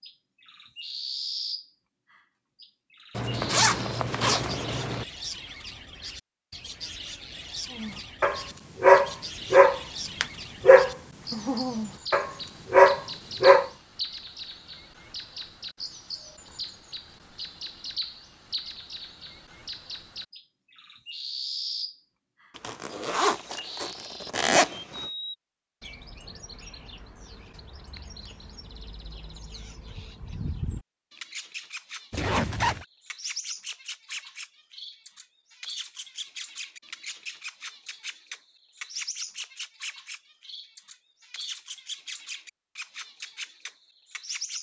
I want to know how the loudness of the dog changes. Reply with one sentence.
The loudness of the dog goes down, then up.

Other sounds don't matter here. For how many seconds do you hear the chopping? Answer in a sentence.
You can't hear the chopping here.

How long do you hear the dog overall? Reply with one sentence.
You can hear the dog for 6 seconds altogether.